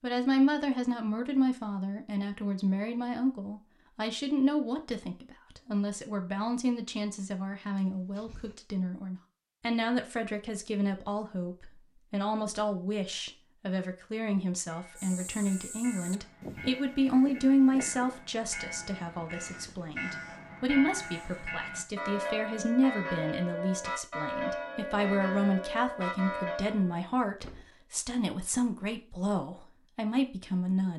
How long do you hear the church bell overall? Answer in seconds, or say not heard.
12 s.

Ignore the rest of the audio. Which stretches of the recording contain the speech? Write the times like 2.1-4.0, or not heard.
0.0-30.9.